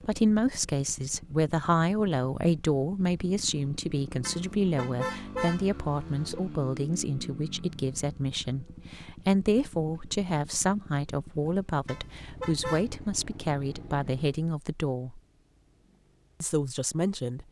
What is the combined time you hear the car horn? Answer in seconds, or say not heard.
3 s.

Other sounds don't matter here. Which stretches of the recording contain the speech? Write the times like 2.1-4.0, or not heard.
0.1-15.2, 16.4-17.4.